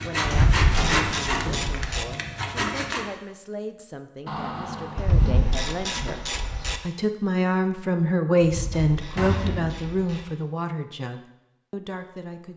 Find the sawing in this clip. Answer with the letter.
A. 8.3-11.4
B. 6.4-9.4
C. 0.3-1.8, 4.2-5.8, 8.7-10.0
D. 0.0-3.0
D.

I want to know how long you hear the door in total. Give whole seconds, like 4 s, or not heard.
4 s.